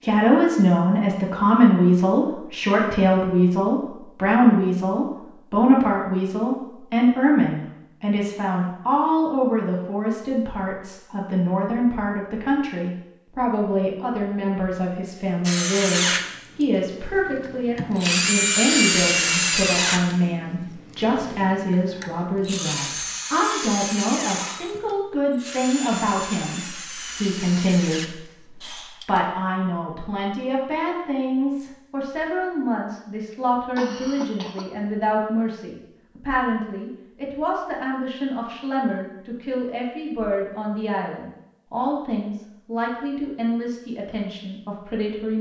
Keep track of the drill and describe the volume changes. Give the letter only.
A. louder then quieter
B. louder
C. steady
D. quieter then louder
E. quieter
E.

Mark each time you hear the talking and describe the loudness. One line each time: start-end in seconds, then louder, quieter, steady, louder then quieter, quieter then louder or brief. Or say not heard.
0.0-45.3 quieter.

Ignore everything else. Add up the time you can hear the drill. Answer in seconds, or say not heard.
14 s.